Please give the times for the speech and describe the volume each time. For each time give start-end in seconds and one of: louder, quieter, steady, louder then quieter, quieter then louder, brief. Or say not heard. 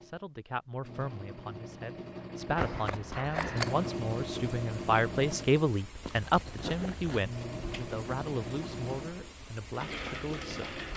0.0-10.8 louder then quieter.